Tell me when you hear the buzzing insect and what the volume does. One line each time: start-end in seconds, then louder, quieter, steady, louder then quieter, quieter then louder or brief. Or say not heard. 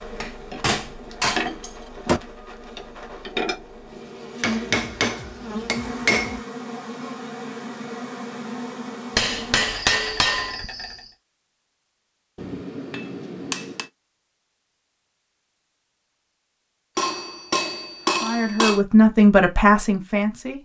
0.0-11.2 steady.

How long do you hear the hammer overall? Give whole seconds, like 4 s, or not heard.
9 s.